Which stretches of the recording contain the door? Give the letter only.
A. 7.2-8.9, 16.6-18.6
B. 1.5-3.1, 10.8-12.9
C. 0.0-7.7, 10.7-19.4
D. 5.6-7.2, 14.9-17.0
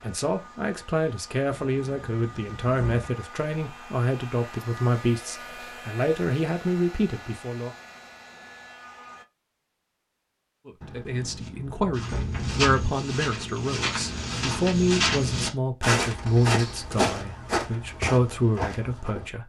B.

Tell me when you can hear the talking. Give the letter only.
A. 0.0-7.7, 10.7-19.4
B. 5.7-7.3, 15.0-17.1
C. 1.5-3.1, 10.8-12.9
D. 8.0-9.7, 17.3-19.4
A.